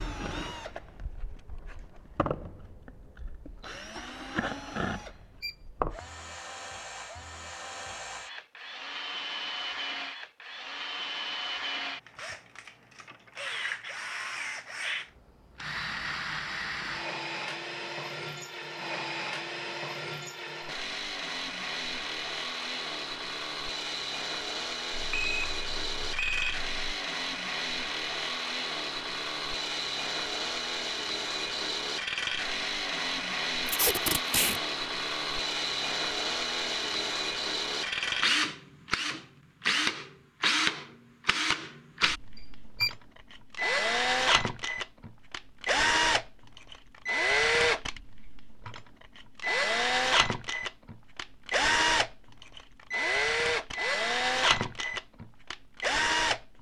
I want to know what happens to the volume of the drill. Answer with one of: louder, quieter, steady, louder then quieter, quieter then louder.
louder.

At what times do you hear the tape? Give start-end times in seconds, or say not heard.
33.6-34.6.